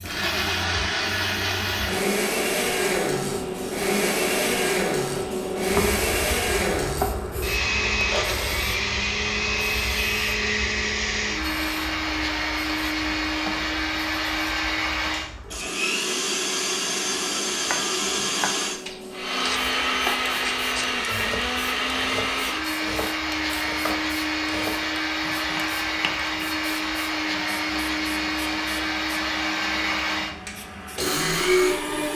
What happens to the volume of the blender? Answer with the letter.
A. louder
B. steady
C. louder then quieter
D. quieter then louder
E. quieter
B.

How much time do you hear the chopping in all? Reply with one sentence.
You can hear the chopping for 9 seconds altogether.